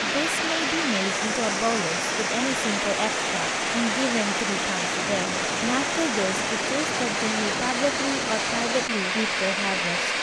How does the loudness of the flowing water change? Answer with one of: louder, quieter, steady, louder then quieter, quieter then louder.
steady.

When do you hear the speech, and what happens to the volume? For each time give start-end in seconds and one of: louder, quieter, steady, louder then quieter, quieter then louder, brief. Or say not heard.
0.0-10.1 steady.